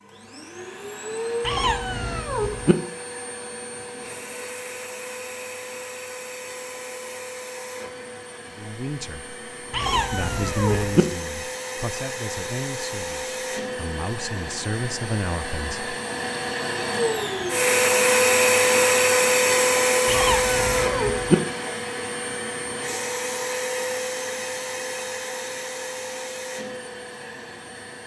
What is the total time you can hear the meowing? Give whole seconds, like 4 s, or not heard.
4 s.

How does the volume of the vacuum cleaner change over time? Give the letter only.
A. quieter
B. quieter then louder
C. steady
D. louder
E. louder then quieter
E.